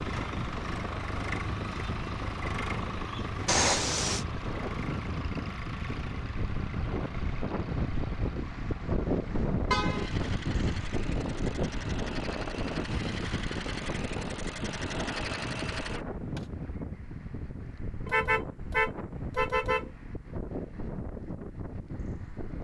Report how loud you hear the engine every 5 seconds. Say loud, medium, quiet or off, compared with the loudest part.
loud, medium, loud, loud, off.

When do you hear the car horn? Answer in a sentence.
You can hear the car horn from 3.5 to 4.2 s, from 9.7 to 10.1 s and from 18.1 to 19.9 s.